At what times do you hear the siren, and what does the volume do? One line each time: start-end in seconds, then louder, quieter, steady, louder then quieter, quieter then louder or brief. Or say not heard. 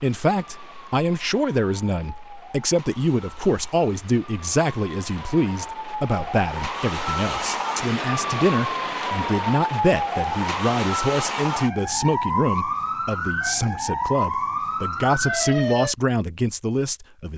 0.0-15.9 louder.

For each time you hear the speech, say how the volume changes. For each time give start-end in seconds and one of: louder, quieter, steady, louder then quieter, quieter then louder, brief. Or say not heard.
0.0-17.3 steady.